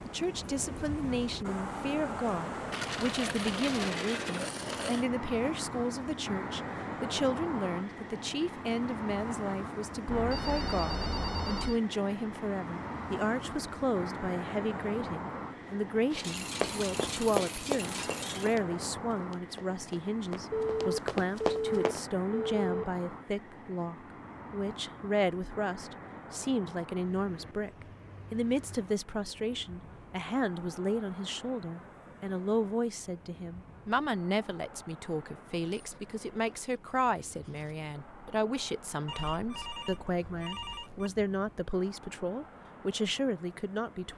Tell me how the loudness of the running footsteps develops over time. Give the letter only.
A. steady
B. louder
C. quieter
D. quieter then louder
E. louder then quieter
D.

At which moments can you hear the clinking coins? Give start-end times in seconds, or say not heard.
2.7-5.0, 16.2-18.6, 35.6-37.8.